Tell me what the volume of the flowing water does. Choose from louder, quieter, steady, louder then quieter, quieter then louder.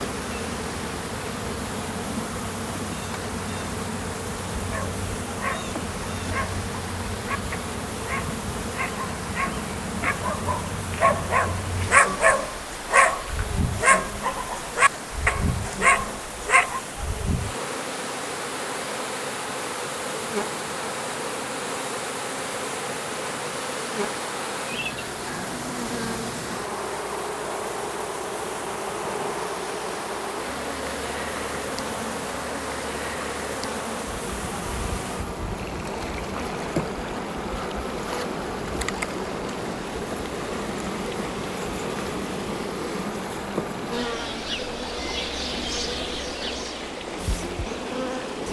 steady.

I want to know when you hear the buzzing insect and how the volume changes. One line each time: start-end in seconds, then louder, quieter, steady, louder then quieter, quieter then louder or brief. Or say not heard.
0.0-48.4 steady.